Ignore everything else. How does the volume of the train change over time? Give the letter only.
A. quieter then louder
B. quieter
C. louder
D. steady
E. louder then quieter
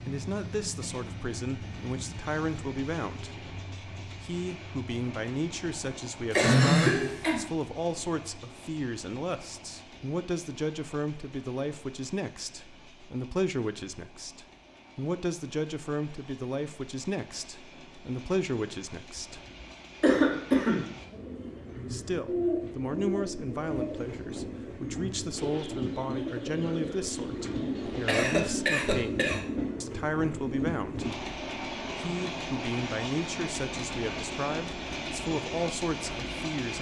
A.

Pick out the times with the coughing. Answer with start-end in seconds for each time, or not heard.
6.3-7.4, 20.0-20.9, 28.1-29.4.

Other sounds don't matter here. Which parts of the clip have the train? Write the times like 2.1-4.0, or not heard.
0.0-36.7.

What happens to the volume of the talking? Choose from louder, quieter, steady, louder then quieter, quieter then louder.
steady.